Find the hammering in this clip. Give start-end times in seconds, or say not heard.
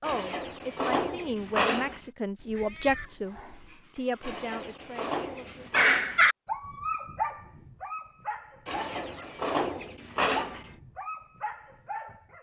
not heard.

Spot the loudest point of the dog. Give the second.
6 s.